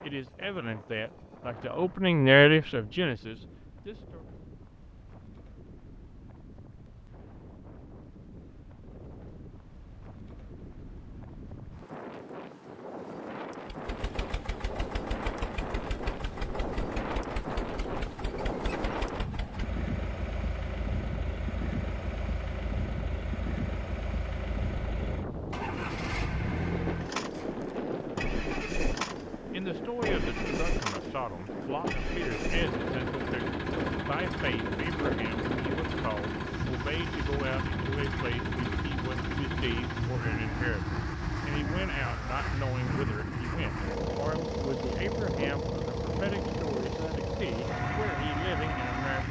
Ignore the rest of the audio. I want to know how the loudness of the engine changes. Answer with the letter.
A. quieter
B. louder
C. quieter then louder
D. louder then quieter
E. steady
B.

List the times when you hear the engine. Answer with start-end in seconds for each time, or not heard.
13.7-49.2.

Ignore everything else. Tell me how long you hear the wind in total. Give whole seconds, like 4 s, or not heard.
49 s.